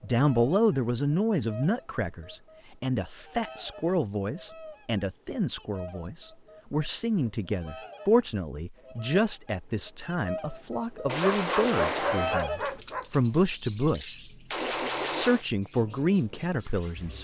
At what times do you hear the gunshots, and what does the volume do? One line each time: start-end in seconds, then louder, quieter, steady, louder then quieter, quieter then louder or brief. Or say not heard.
11.1-15.4 quieter then louder.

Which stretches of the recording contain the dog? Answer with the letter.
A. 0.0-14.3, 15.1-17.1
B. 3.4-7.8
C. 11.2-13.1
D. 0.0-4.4
C.